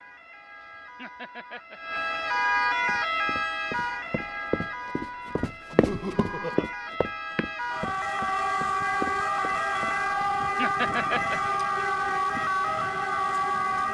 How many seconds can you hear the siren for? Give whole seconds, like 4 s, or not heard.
14 s.